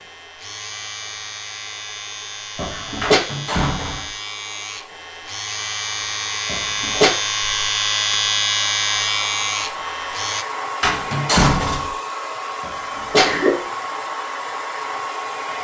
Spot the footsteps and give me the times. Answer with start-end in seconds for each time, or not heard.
not heard.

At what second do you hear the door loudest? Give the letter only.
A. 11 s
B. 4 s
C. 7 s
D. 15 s
A.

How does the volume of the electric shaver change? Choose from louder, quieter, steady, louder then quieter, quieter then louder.
louder.